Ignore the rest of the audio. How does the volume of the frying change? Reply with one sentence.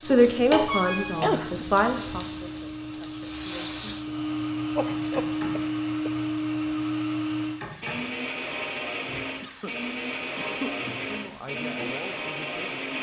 The loudness of the frying goes down.